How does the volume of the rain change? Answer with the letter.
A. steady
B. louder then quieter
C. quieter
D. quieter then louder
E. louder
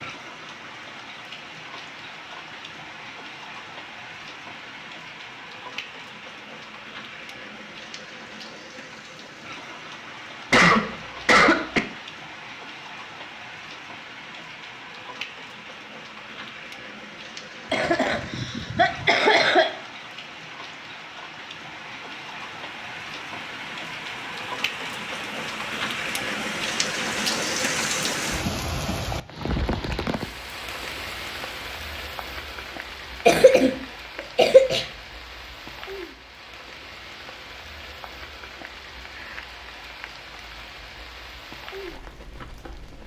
B.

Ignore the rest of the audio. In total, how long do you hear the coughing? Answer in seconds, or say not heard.
4 s.